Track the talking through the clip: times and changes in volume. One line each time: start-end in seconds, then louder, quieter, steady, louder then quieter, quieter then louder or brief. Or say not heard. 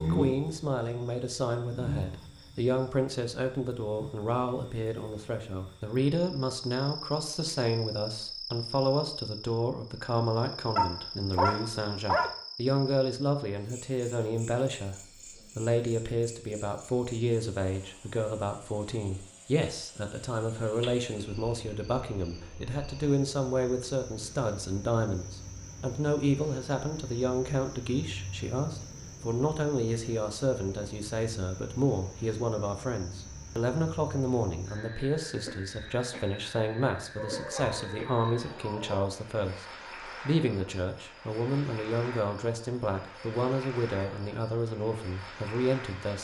0.0-46.2 steady.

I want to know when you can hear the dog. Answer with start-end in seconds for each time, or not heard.
10.8-12.3, 37.1-39.1.